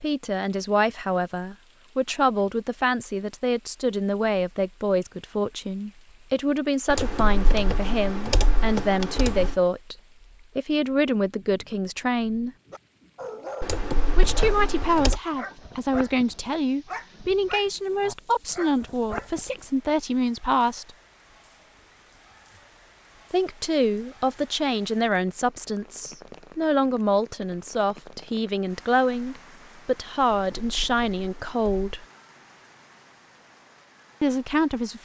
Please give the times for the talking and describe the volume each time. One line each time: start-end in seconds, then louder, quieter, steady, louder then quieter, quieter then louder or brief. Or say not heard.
0.0-9.9 steady
10.6-12.5 brief
14.2-20.9 steady
23.3-32.0 steady
34.2-35.0 brief.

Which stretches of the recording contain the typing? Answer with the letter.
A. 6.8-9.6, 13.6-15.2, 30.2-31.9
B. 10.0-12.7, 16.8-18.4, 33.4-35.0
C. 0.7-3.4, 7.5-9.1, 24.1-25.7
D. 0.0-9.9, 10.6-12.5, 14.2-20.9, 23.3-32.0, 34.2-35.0
A.